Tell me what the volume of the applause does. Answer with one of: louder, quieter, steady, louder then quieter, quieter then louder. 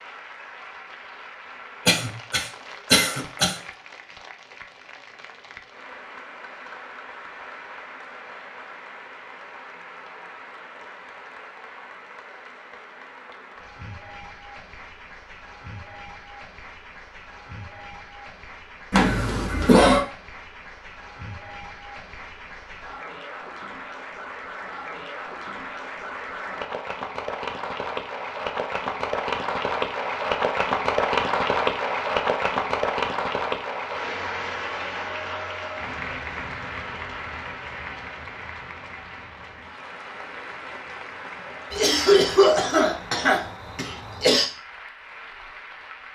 louder then quieter.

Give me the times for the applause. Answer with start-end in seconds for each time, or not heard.
0.0-46.1.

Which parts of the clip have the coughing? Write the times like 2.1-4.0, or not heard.
1.9-3.5, 18.9-20.1, 41.7-44.5.